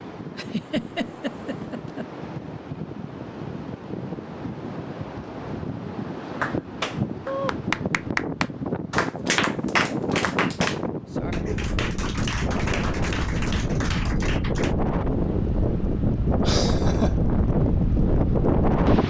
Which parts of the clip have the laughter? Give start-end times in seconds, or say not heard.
0.3-2.0, 16.4-17.1.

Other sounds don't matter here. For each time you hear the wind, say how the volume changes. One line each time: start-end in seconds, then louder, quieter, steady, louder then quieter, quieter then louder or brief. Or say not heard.
0.0-19.0 louder.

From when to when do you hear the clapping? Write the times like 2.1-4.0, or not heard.
6.2-14.8.